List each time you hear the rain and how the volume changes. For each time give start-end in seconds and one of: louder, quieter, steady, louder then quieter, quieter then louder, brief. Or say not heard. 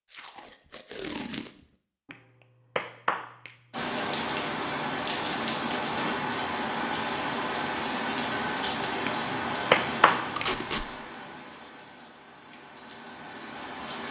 3.7-14.0 quieter.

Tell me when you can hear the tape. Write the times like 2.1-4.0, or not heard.
0.1-1.5, 10.3-10.8.